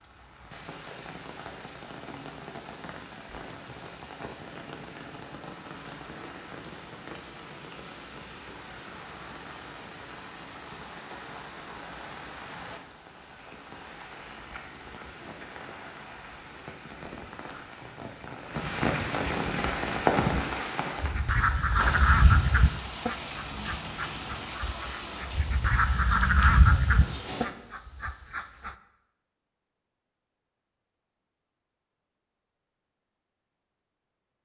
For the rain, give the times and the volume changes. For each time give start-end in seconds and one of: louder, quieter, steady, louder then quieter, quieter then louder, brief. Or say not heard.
0.0-27.4 louder then quieter.